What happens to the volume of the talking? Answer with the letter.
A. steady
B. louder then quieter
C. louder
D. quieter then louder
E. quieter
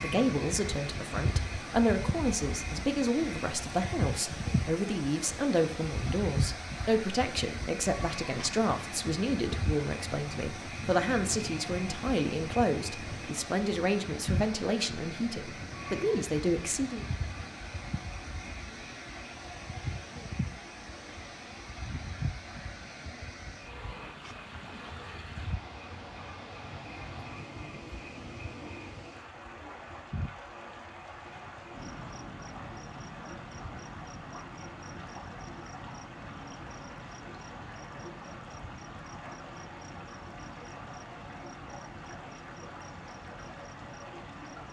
A.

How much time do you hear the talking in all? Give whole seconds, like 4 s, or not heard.
17 s.